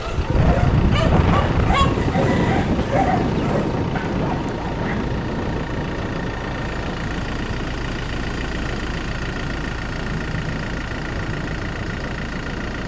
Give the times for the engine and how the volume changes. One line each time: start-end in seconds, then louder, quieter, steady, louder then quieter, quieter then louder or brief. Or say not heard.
0.0-12.8 steady.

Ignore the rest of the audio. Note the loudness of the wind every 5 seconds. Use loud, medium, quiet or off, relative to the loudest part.
loud, medium, medium.